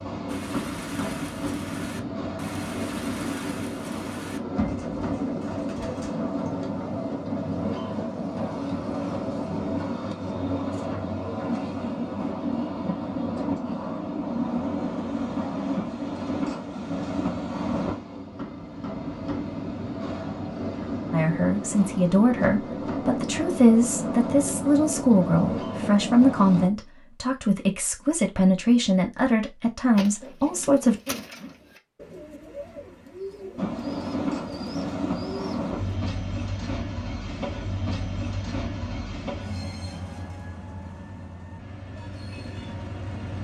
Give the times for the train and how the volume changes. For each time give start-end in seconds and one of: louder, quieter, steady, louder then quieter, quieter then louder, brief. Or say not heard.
0.0-26.7 steady
33.5-43.3 quieter.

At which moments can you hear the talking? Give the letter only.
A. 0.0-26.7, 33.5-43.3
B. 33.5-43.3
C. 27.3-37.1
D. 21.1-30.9
D.